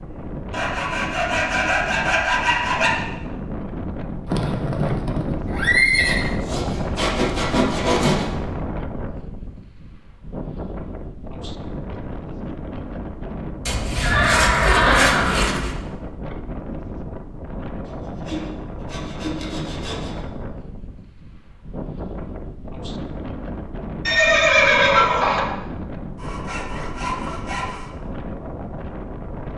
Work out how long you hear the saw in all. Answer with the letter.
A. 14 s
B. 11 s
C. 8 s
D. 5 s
B.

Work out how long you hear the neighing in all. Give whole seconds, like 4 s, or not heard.
5 s.